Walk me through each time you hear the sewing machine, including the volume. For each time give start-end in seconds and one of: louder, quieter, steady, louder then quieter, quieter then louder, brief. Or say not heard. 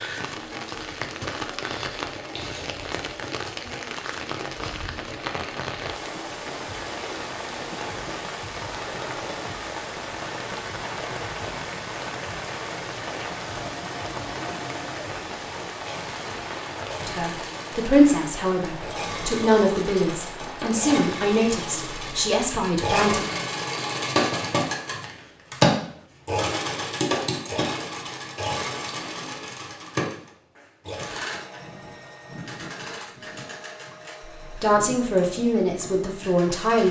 0.2-36.8 louder then quieter.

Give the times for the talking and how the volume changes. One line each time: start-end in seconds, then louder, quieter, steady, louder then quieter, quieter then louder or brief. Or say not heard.
17.1-23.2 quieter
34.5-36.8 brief.